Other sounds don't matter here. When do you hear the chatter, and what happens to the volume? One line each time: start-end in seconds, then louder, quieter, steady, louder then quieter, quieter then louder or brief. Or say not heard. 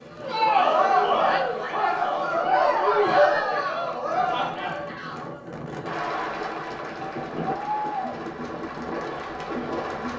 0.1-10.1 quieter.